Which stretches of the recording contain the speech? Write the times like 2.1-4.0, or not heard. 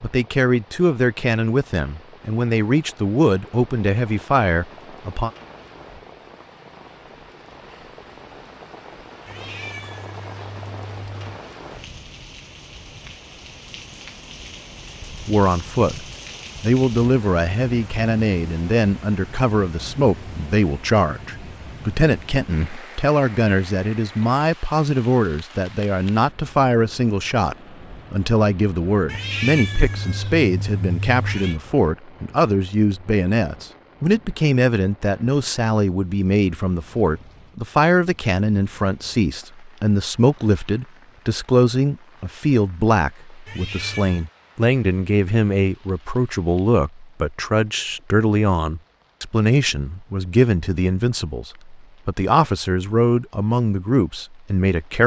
0.0-5.3, 15.2-55.0.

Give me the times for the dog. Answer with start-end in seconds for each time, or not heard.
not heard.